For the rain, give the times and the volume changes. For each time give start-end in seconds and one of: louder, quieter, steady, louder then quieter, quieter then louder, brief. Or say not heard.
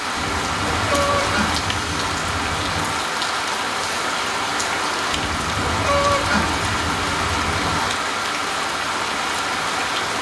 0.0-10.1 steady.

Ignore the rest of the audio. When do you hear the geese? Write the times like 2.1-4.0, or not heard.
0.1-3.0, 5.1-8.0.